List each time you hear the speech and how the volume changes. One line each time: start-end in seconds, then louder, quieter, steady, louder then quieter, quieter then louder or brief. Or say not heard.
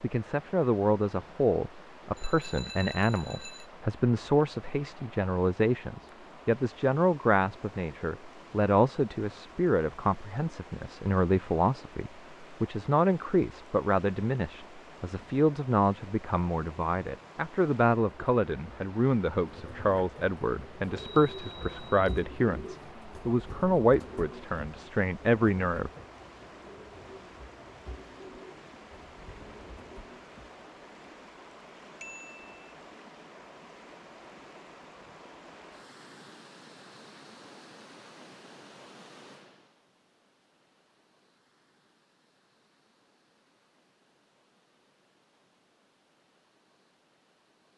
0.0-25.9 steady.